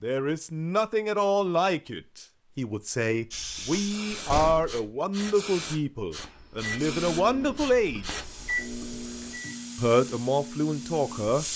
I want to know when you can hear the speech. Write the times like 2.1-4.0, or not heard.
0.0-8.2, 9.8-11.4.